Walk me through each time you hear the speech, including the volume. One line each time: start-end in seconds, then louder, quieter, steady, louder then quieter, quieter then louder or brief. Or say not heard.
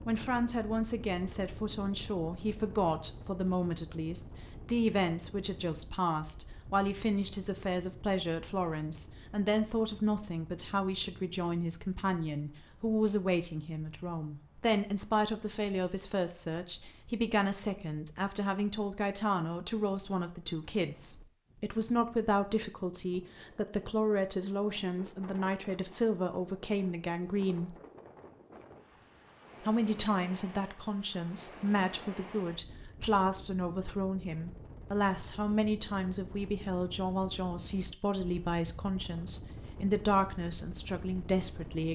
0.1-27.8 steady
29.6-41.8 steady.